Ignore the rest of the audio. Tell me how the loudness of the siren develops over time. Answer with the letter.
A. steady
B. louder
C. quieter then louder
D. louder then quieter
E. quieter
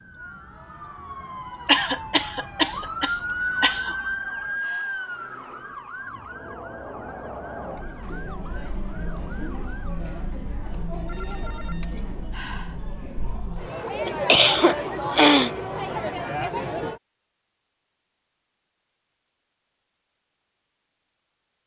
D.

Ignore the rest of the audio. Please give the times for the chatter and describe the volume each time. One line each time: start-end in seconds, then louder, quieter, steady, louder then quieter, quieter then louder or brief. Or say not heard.
0.0-17.0 louder.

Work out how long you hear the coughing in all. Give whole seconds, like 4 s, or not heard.
4 s.